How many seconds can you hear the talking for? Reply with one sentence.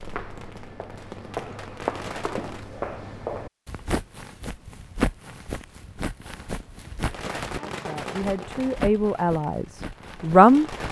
The talking can be heard for 3 seconds in total.